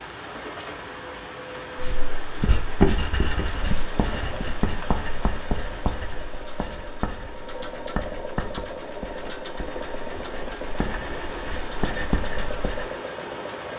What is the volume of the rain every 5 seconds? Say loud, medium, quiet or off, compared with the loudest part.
loud, medium, loud.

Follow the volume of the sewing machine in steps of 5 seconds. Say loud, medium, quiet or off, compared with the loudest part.
medium, loud, loud.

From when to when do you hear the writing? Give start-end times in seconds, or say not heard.
1.8-12.9.